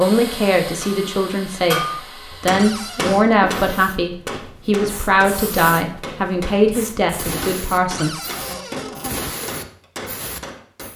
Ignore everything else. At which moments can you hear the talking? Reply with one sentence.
You can hear the talking from 0.0 to 8.6 s.